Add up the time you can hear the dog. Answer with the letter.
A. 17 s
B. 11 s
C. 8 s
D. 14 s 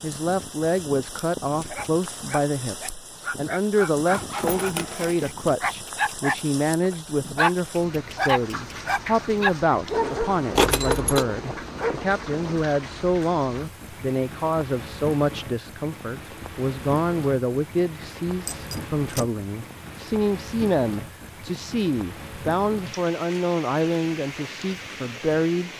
B.